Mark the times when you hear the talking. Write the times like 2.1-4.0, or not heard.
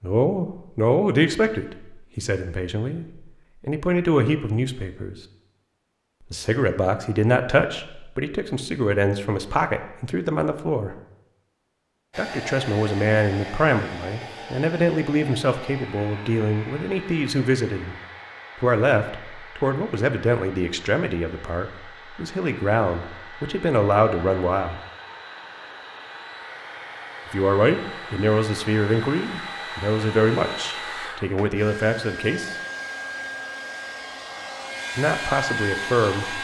0.0-5.2, 6.3-10.9, 12.2-17.9, 18.6-24.8, 27.3-32.5, 35.0-36.3.